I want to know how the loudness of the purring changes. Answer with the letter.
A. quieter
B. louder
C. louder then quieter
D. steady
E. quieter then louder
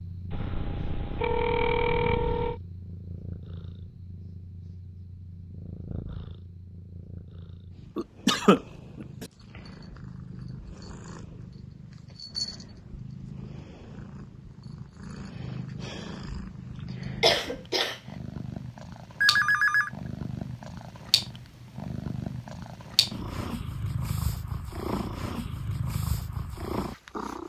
B.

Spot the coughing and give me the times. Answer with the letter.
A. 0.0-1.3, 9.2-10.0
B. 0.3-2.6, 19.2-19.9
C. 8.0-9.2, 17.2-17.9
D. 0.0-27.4
C.